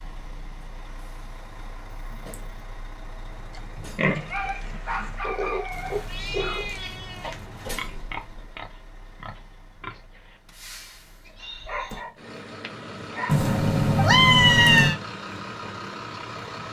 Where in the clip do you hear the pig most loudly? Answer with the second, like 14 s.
4 s.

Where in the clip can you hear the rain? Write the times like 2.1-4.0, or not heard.
not heard.